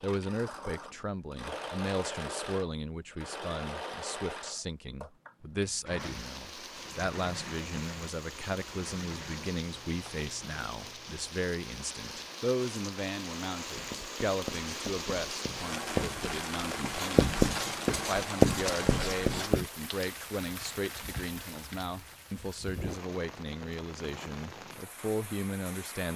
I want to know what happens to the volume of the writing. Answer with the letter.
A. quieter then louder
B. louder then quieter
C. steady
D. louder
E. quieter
D.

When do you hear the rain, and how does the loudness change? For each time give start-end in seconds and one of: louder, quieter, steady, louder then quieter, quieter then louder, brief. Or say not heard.
6.0-26.1 louder then quieter.